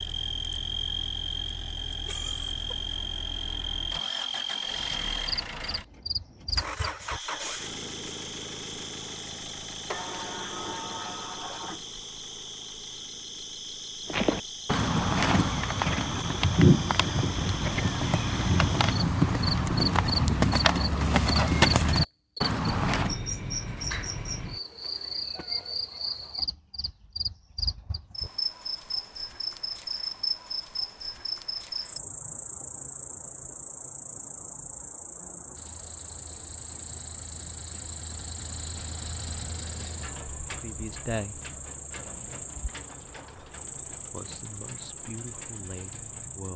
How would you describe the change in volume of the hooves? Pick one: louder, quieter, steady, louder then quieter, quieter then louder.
steady.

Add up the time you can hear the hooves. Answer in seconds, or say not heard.
9 s.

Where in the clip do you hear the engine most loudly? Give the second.
7 s.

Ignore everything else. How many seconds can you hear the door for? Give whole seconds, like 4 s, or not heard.
2 s.